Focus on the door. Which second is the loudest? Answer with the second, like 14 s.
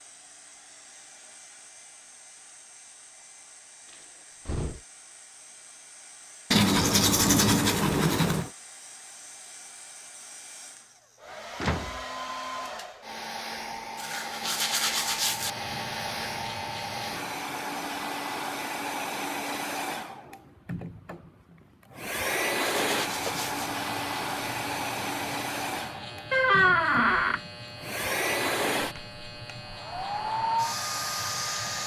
27 s.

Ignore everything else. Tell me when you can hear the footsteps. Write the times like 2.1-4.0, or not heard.
not heard.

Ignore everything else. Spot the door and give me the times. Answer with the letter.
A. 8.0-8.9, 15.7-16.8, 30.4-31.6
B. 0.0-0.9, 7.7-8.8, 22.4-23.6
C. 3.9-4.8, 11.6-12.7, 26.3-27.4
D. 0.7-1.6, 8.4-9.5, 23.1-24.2
C.